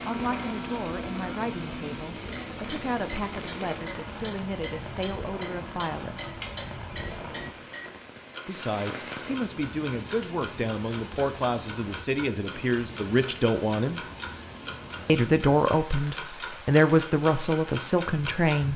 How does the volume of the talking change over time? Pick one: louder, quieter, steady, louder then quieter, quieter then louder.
louder.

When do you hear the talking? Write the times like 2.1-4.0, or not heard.
0.1-6.3, 8.4-14.0, 15.1-18.7.